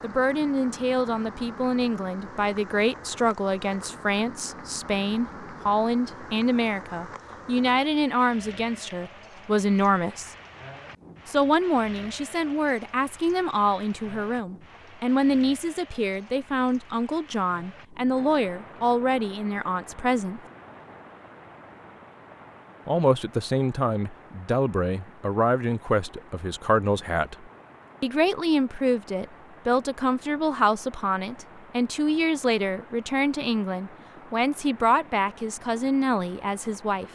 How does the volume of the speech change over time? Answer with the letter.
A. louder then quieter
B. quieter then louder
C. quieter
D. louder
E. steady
E.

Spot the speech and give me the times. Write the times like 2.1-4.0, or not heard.
0.0-10.3, 11.2-20.4, 22.9-37.0.